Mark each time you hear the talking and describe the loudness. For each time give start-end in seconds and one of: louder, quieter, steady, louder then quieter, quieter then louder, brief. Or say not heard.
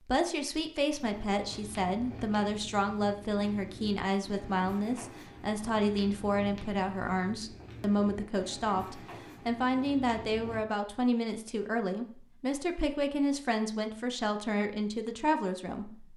0.1-16.1 steady.